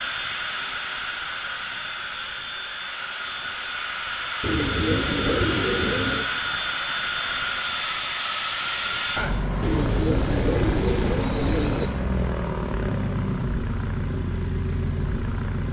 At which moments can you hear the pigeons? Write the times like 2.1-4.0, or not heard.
4.4-6.2, 9.6-11.9.